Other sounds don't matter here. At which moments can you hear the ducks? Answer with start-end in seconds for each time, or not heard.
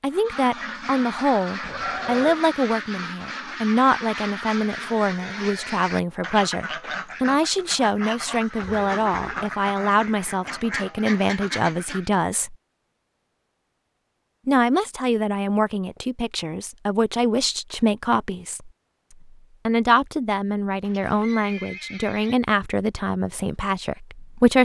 0.1-12.2.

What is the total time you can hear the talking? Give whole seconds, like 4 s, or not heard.
23 s.